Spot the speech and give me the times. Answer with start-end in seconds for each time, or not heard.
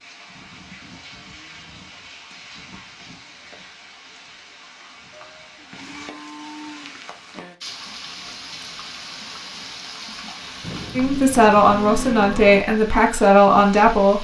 10.9-14.1.